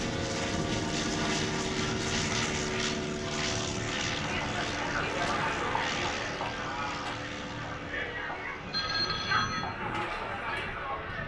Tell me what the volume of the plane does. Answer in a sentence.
The loudness of the plane goes down.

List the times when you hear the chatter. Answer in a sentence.
You can hear the chatter from 4.2 to 11.2 s.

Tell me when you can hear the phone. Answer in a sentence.
You can hear the phone from 8.7 to 9.8 s.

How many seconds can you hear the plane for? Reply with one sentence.
You can hear the plane for 11 seconds altogether.